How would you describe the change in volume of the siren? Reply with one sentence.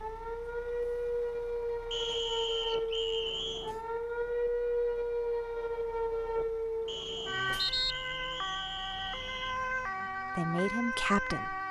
The loudness of the siren stays about the same.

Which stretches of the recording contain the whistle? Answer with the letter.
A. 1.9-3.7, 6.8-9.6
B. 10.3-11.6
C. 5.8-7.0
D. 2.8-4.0
A.